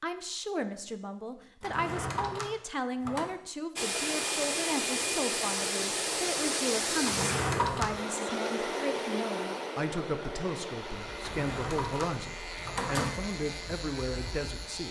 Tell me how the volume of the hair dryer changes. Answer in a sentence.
The volume of the hair dryer goes down.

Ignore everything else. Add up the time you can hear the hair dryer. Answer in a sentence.
The hair dryer can be heard for 11 seconds in total.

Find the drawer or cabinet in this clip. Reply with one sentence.
The drawer or cabinet can be heard from 1.6 to 3.3 s, from 7.0 to 8.0 s and from 11.2 to 13.2 s.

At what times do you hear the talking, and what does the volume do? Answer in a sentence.
You can hear the talking from 0.0 to 14.8 s, at a steady volume.